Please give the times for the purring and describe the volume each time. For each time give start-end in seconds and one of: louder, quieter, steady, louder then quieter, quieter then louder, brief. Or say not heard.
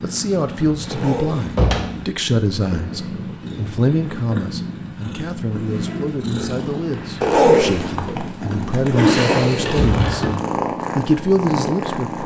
0.0-12.2 louder.